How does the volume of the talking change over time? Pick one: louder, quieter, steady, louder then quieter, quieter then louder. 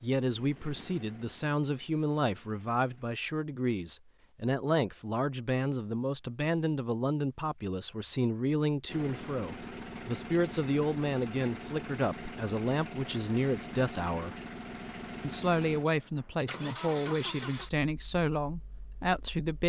steady.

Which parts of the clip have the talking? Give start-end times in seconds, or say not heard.
0.0-14.3, 15.2-19.6.